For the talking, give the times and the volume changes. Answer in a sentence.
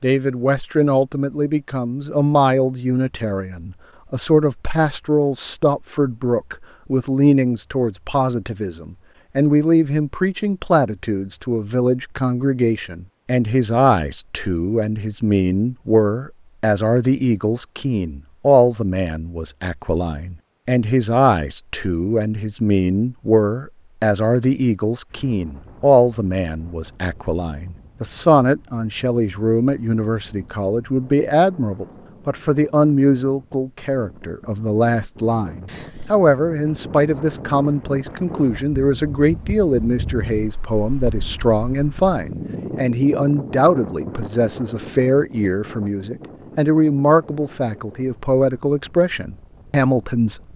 You can hear the talking from 0.0 to 50.5 s, at a steady volume.